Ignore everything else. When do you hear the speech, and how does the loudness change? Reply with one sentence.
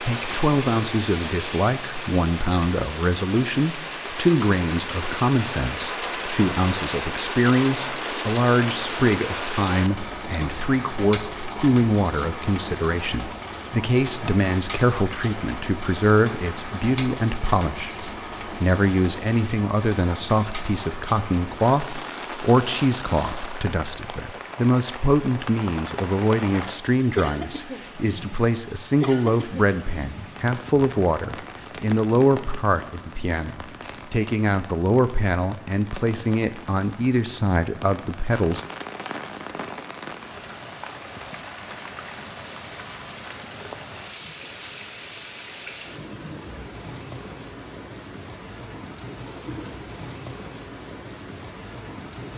You can hear the speech from 0.0 to 38.6 s, at a steady volume.